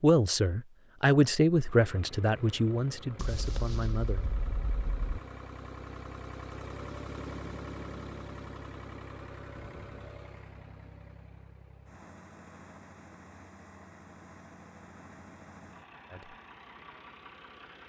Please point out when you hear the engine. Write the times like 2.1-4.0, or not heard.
1.5-17.8.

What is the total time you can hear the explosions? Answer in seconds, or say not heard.
2 s.